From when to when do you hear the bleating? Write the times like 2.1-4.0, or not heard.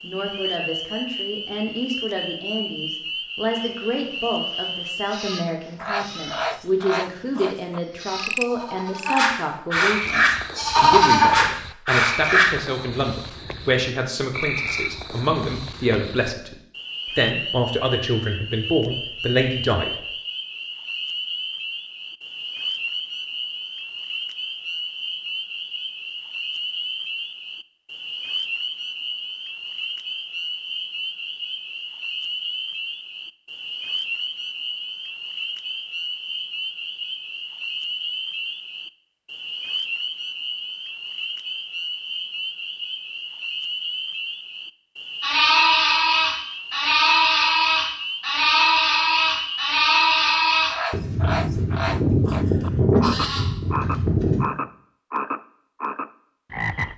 3.5-12.4, 45.2-54.4.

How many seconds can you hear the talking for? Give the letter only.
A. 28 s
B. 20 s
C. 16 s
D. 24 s
B.